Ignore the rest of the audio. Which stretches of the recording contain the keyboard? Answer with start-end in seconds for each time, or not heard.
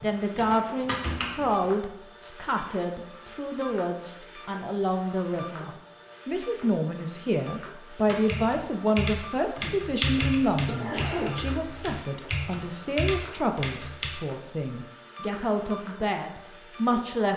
0.0-1.6, 8.1-14.1.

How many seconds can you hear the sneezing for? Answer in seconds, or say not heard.
2 s.